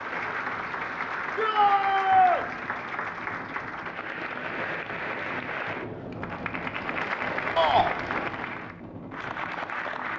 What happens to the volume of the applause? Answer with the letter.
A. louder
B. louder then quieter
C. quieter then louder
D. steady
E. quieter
D.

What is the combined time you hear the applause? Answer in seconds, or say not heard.
10 s.